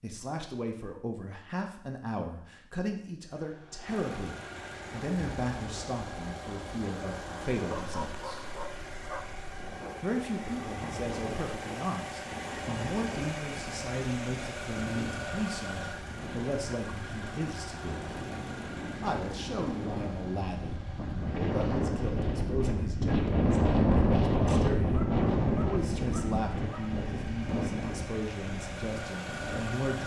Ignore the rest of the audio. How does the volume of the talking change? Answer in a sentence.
The volume of the talking stays about the same.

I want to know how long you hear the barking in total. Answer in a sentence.
You can hear the barking for 4 seconds altogether.